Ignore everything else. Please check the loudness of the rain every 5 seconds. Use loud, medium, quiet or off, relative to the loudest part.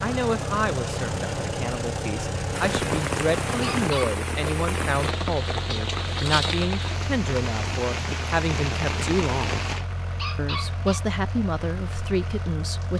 loud, loud, quiet.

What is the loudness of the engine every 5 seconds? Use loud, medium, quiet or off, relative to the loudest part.
loud, medium, medium.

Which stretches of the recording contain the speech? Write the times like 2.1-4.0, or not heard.
0.0-9.7, 10.3-12.9.